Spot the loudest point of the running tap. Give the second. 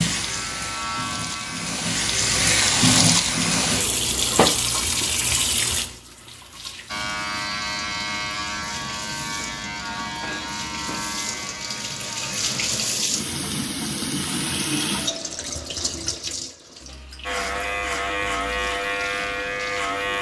3 s.